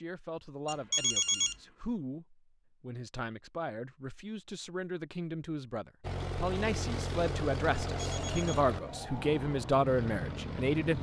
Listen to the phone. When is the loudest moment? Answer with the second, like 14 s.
1 s.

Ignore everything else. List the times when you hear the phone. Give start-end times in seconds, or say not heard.
0.7-1.6, 8.0-8.7.